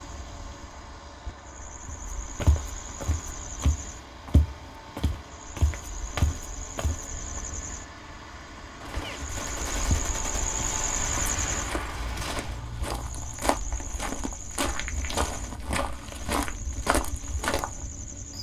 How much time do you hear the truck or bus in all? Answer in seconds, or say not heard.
18 s.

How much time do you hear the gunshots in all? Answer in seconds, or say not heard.
4 s.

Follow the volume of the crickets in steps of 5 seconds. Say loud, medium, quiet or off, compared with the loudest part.
medium, medium, loud, medium.